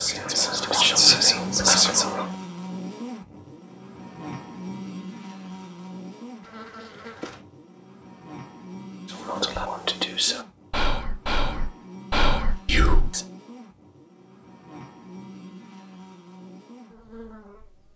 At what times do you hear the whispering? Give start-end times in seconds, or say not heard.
0.0-2.3, 9.1-13.2.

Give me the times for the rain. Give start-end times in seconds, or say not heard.
not heard.